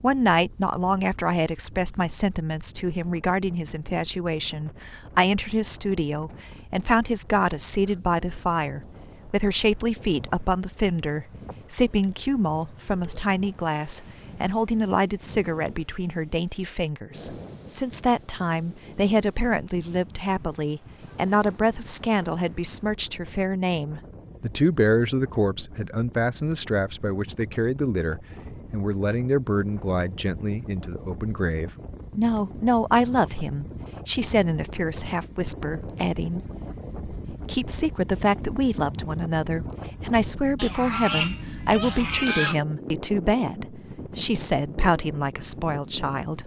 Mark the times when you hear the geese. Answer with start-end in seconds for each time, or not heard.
40.5-42.6.